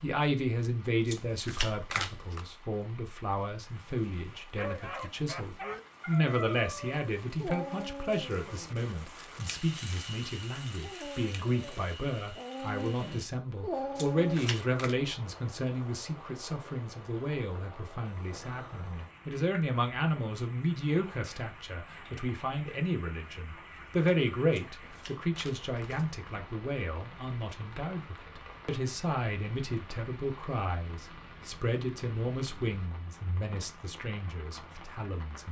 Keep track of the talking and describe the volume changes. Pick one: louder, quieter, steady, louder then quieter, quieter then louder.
steady.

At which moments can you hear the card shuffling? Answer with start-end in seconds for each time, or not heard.
1.1-2.5, 13.9-14.9, 24.5-26.1.